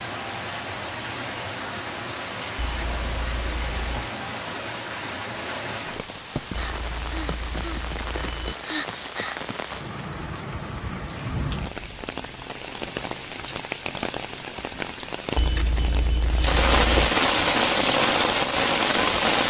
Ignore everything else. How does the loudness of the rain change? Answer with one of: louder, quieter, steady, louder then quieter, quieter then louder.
louder.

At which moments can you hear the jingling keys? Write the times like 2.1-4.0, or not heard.
2.5-4.1, 6.5-8.6, 15.3-17.1.